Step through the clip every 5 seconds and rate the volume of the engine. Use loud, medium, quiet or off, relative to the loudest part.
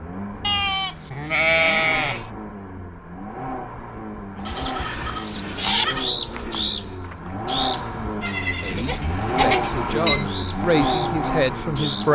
medium, loud, loud.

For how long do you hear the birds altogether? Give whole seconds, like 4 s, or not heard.
8 s.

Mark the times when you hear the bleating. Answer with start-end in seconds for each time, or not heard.
0.4-2.2, 4.5-6.1, 8.2-10.2.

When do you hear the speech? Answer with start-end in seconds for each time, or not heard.
8.6-12.1.